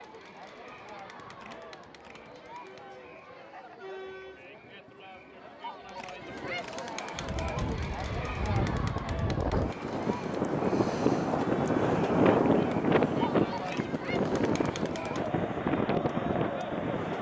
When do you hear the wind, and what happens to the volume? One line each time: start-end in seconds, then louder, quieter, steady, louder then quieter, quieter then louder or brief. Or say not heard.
7.2-17.1 louder then quieter.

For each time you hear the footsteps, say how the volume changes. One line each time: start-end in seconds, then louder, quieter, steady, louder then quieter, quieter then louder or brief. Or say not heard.
not heard.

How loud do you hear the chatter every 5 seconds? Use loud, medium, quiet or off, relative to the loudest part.
medium, loud, loud, loud.